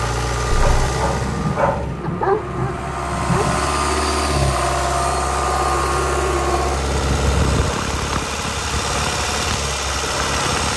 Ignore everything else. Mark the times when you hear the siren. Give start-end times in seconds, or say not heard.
1.9-6.8.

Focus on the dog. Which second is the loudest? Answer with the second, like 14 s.
2 s.